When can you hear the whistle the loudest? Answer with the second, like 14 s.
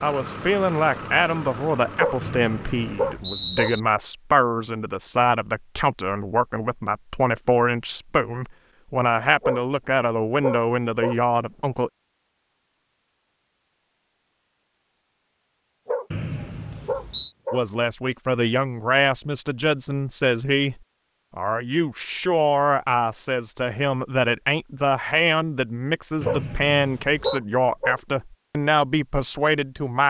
3 s.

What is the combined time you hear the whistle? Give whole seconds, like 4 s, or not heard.
4 s.